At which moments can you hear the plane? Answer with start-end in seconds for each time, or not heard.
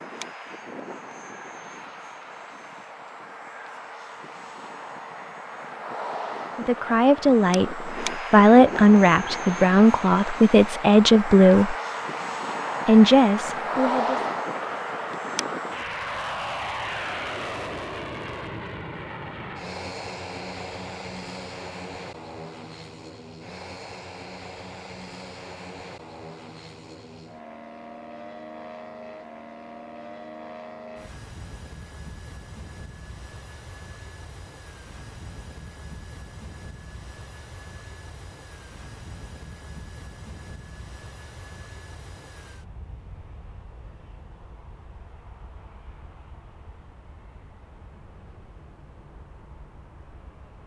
0.0-50.6.